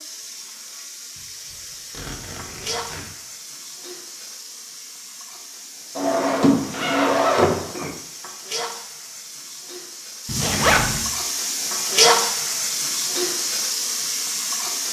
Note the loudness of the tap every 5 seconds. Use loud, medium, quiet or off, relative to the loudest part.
quiet, quiet, loud.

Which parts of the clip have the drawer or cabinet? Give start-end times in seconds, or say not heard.
6.0-7.9.